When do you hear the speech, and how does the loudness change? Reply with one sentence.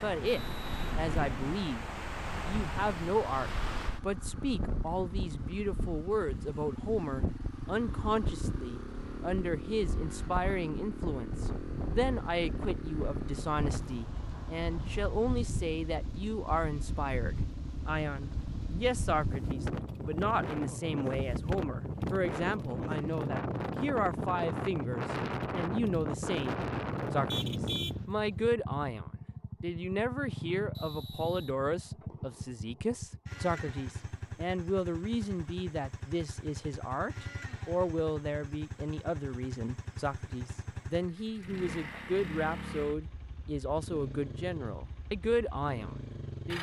You can hear the speech briefly from 0.0 to 1.9 s; and from 2.5 to 46.5 s, at a steady volume.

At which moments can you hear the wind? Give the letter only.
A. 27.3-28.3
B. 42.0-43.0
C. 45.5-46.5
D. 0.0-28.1
D.